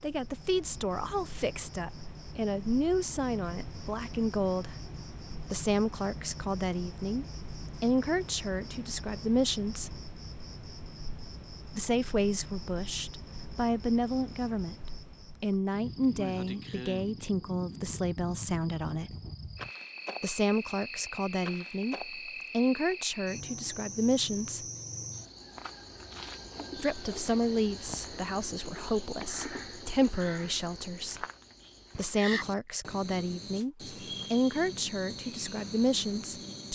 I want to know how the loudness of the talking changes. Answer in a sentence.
The loudness of the talking stays about the same.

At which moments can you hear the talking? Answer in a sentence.
You can hear the talking from 0.0 to 4.8 s, from 5.5 to 9.9 s, from 11.8 to 19.1 s, from 20.2 to 24.6 s, from 26.8 to 31.2 s and from 31.9 to 36.7 s.